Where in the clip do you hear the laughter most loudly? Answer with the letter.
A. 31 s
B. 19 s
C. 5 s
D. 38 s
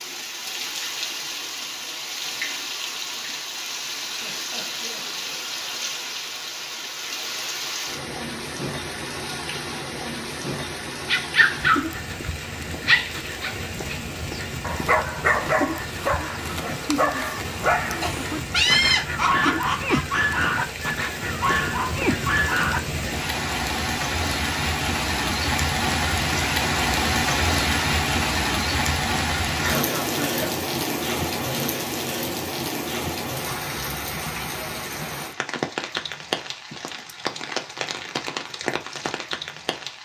B.